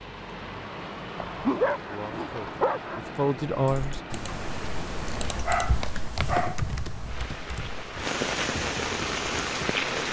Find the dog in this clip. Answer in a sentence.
The dog can be heard from 1.1 to 3.0 s and from 5.5 to 6.6 s.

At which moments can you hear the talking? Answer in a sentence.
You can hear the talking from 1.9 to 4.3 s.